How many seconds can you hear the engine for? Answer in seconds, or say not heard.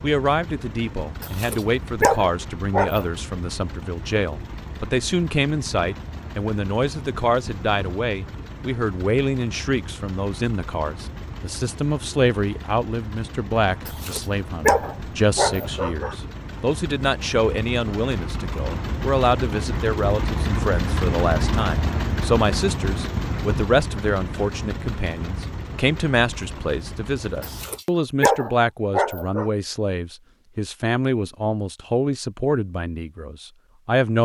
28 s.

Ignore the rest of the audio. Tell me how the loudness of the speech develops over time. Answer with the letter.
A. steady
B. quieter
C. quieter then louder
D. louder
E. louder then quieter
A.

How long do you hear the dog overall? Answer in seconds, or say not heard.
6 s.